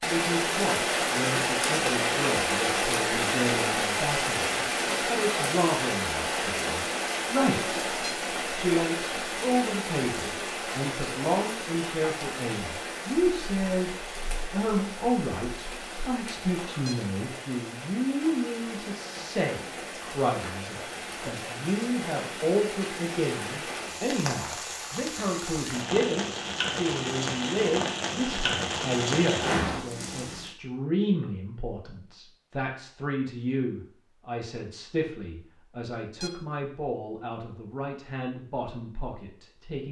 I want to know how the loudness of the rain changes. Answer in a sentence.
The volume of the rain goes down, then up.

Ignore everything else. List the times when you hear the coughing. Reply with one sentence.
The coughing can't be heard in this clip.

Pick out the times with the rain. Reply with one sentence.
You can hear the rain from 0.0 to 30.5 s.